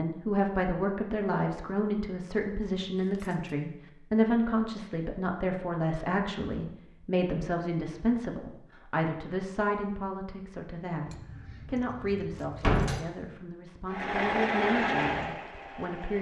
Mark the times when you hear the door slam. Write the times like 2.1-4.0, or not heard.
12.6-13.0.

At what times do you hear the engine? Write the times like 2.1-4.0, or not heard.
13.8-16.1.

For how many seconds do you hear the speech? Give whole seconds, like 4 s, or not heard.
16 s.